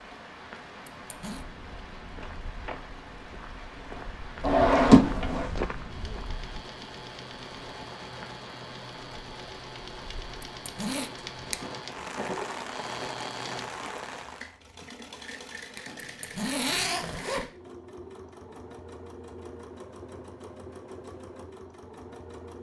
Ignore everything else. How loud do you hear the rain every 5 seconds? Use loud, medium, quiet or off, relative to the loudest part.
medium, medium, loud, off, off.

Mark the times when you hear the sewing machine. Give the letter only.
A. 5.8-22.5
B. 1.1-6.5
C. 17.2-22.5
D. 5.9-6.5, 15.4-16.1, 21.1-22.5
A.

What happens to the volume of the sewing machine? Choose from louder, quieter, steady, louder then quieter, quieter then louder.
steady.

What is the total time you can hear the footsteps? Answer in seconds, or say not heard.
5 s.